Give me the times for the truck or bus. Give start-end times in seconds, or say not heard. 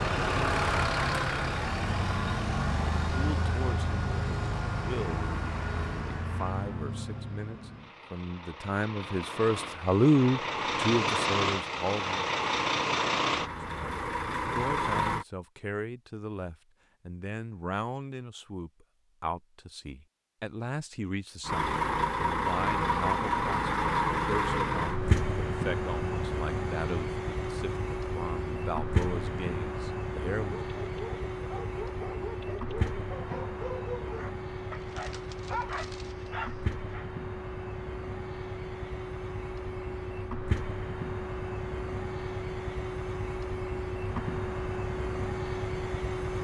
0.0-15.2, 21.4-46.4.